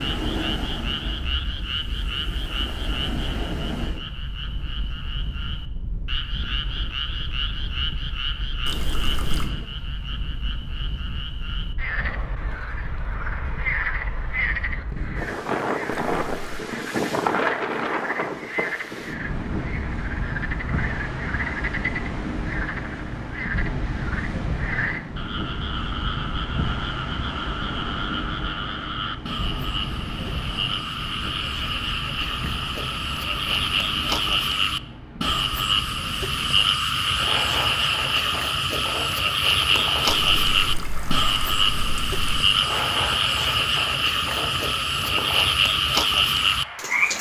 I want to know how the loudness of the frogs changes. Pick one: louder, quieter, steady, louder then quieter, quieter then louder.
louder.